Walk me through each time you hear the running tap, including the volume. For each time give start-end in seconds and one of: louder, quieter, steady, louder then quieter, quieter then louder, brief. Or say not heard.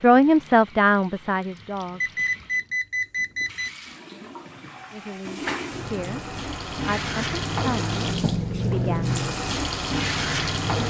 0.0-10.8 louder.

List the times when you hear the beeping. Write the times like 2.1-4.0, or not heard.
2.0-3.7.